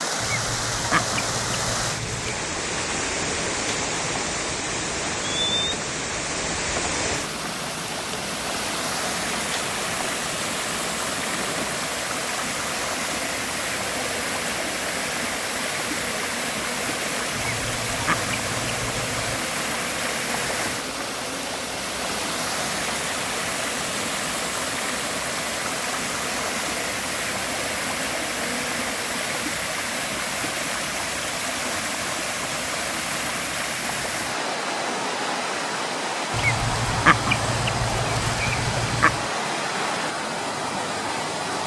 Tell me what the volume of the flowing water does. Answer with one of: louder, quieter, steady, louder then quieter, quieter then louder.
steady.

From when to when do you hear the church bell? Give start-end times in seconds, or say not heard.
not heard.